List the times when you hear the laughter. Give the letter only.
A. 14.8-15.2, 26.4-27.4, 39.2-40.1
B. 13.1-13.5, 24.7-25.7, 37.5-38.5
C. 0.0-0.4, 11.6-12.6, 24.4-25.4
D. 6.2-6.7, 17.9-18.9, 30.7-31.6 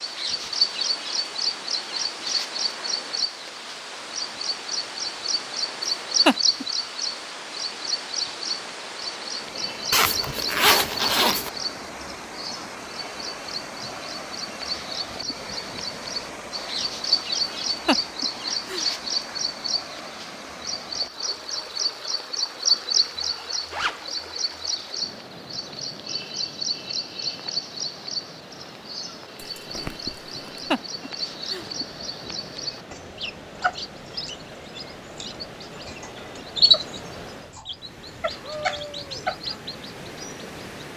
D.